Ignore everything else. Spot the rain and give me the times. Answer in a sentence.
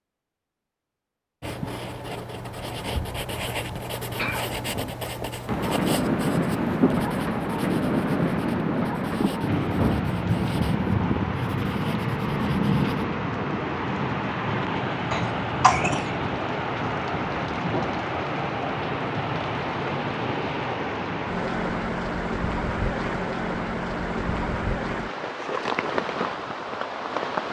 The rain can be heard from 5.5 to 27.4 s.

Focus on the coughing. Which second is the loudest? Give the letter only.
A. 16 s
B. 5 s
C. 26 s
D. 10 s
A.